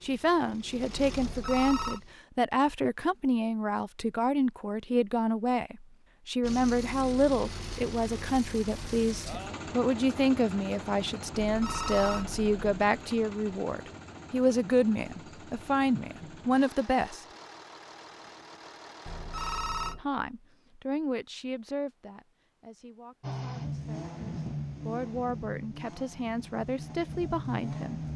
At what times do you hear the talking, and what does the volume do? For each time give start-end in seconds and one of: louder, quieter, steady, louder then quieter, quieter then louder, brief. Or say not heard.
0.0-17.2 steady
19.9-28.0 quieter then louder.